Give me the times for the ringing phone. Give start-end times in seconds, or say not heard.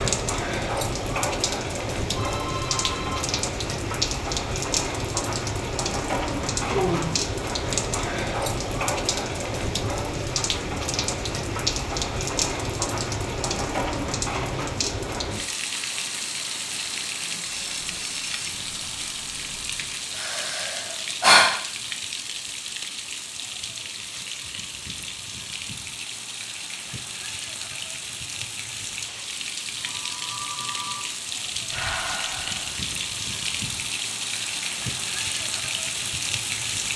2.1-3.3, 17.5-19.9, 29.8-31.1.